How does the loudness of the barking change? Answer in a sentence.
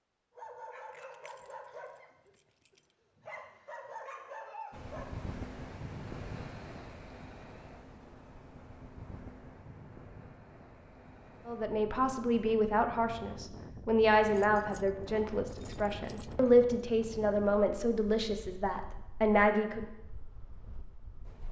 The volume of the barking goes down, then up.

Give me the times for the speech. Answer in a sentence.
The speech can be heard from 11.4 to 19.9 s.